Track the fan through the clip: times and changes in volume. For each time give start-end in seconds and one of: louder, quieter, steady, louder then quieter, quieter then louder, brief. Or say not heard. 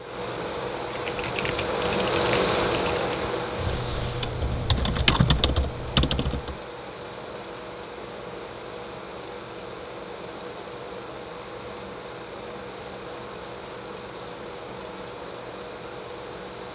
0.0-16.6 quieter.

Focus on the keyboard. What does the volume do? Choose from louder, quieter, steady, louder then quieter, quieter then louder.
louder.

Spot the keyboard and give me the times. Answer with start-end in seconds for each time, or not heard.
0.9-6.5.